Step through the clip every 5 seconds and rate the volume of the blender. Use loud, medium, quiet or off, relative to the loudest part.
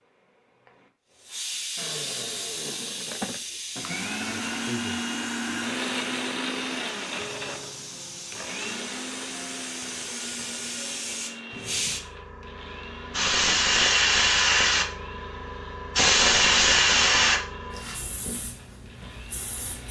loud, loud, medium, quiet.